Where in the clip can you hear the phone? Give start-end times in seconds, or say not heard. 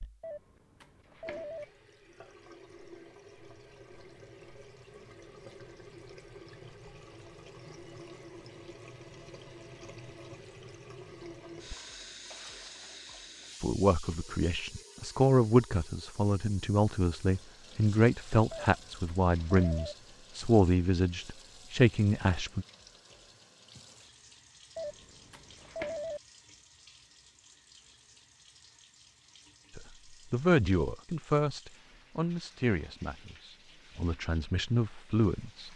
0.2-1.6, 18.5-19.9, 24.8-26.2.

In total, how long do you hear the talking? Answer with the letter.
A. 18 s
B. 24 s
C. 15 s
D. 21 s
C.